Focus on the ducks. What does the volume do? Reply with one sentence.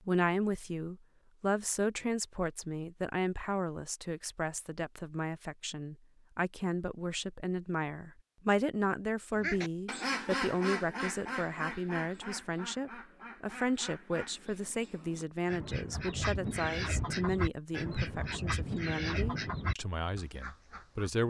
The volume of the ducks goes down, then up.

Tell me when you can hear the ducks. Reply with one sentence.
The ducks can be heard from 9.3 to 21.1 s.